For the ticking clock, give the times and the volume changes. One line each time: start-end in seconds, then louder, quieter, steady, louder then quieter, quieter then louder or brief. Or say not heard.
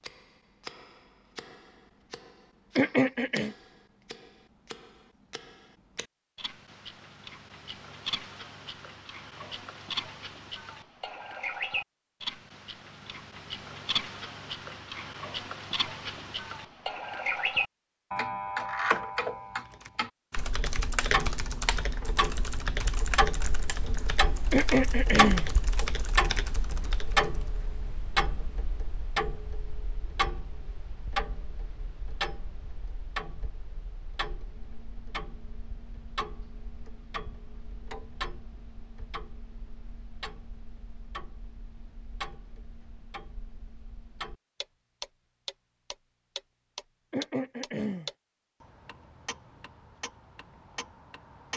0.0-51.5 louder then quieter.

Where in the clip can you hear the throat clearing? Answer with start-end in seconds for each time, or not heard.
2.8-3.5, 24.5-25.5, 47.1-48.1.